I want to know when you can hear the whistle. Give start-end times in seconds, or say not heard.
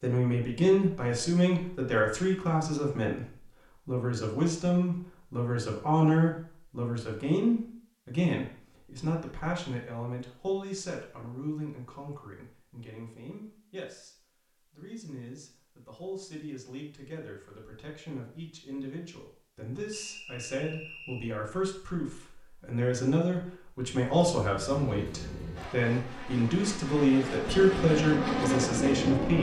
19.9-21.3.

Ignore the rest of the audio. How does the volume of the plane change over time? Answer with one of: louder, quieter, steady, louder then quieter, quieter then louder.
louder.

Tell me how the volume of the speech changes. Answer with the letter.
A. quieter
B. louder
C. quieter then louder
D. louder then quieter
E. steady
C.